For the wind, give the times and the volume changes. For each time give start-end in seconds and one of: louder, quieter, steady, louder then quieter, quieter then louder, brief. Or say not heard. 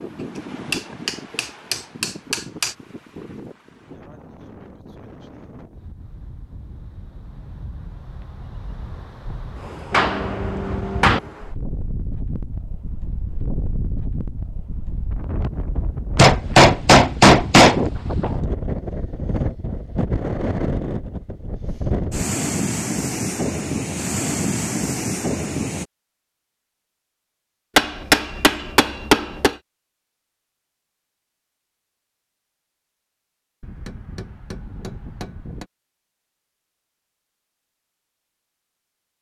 0.0-25.9 louder.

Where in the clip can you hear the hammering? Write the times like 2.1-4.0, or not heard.
0.7-2.7, 9.9-11.2, 16.1-17.9, 27.8-29.6, 33.6-35.6.